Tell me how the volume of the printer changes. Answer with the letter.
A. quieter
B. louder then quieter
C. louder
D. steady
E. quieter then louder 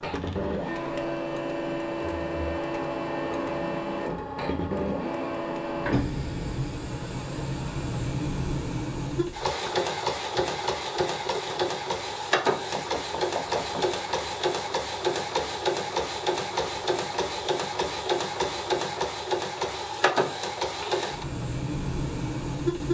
D.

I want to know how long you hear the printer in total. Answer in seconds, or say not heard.
23 s.